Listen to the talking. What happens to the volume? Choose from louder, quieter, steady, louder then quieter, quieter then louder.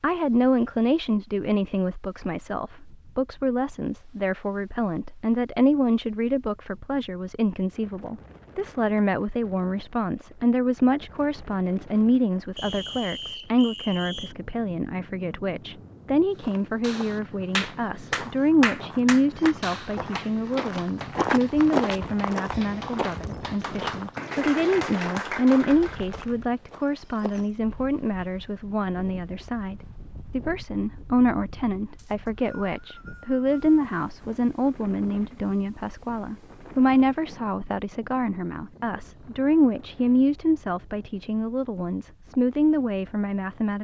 steady.